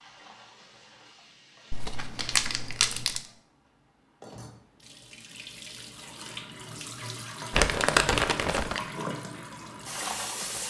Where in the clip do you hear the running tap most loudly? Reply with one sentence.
The loudest moment of the running tap is at 10 seconds.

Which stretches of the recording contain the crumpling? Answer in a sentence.
The crumpling can be heard from 1.7 to 3.2 s and from 7.5 to 8.8 s.